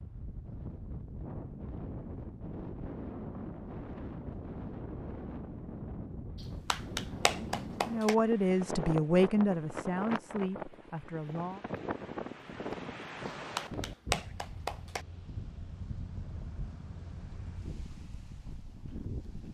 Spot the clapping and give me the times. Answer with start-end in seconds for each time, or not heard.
6.4-8.2, 13.2-15.1.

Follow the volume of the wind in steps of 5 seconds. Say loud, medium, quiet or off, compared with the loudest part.
loud, loud, loud, medium.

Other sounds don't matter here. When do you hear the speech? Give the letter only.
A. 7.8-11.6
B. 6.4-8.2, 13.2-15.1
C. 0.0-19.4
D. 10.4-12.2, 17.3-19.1
A.